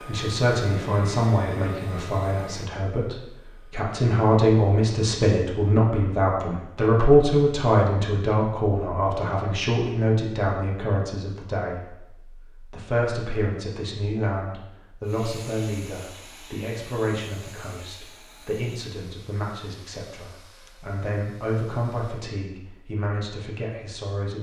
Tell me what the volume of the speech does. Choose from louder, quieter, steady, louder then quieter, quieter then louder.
quieter.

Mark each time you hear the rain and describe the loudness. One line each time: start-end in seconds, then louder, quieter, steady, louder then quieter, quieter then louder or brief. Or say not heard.
not heard.